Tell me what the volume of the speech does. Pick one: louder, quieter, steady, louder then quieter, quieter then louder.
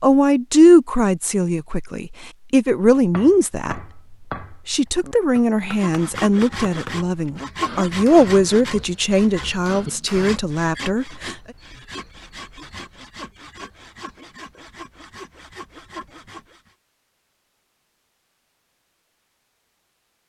quieter.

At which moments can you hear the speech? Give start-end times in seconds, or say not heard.
0.0-3.8, 4.7-11.3.